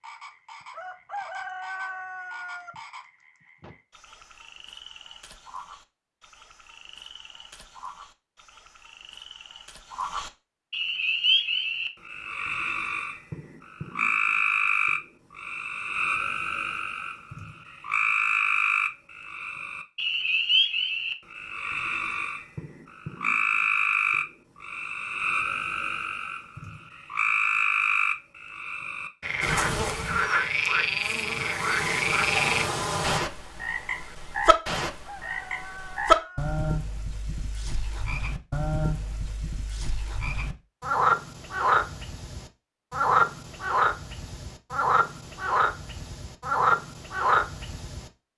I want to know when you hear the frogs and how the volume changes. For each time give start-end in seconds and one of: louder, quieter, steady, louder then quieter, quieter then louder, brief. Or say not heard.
0.0-48.1 louder.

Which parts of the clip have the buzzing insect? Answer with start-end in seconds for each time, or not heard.
29.4-33.2.